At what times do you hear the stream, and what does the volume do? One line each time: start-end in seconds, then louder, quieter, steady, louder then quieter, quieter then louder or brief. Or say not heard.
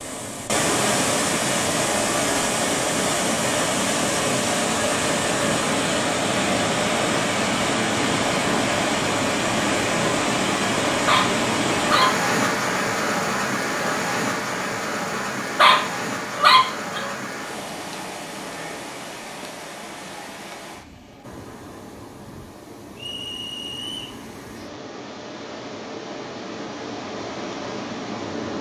0.0-28.5 quieter.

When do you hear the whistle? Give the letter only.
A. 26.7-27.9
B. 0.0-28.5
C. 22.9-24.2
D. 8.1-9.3
C.